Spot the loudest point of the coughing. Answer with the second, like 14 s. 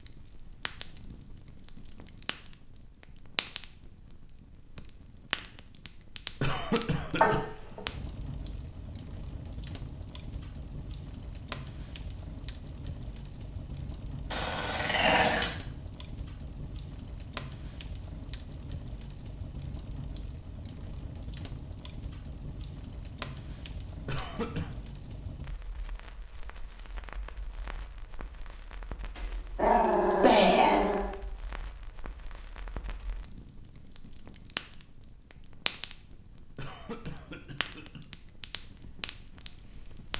7 s.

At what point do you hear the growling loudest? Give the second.
30 s.